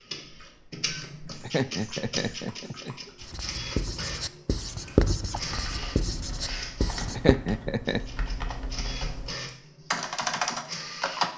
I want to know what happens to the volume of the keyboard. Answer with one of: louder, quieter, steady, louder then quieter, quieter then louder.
louder.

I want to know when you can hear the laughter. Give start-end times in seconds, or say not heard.
1.4-3.1, 7.2-8.0.